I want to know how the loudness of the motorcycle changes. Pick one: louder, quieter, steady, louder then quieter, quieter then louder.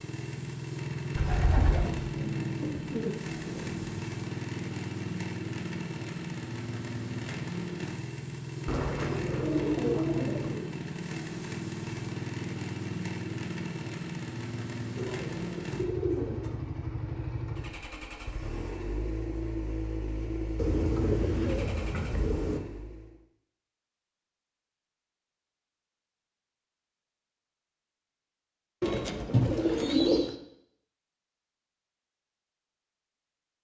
steady.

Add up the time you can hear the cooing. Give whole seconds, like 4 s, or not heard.
10 s.